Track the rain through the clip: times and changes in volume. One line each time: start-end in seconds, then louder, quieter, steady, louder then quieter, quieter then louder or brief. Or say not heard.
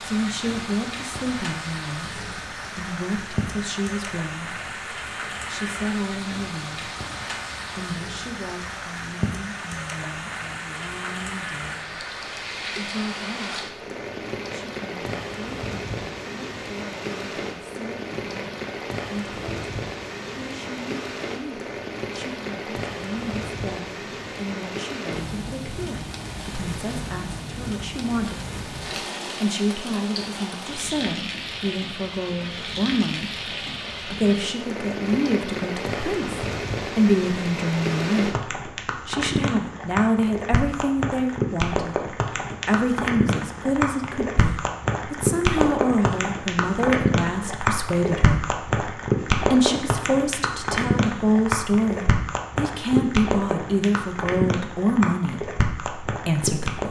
0.0-56.8 louder.